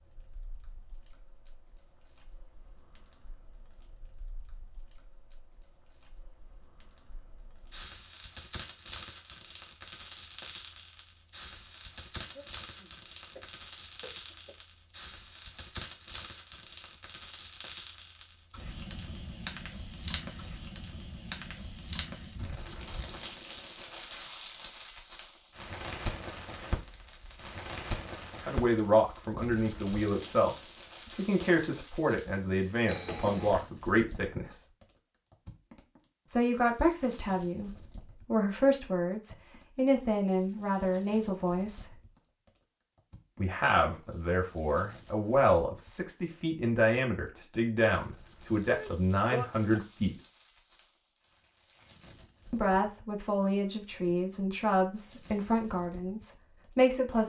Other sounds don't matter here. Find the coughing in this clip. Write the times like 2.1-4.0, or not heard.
12.2-14.7, 32.9-33.6, 48.6-49.8.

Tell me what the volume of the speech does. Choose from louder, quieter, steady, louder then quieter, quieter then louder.
steady.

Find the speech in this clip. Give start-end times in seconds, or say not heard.
28.4-34.6, 36.3-42.0, 43.4-50.1, 52.5-57.2.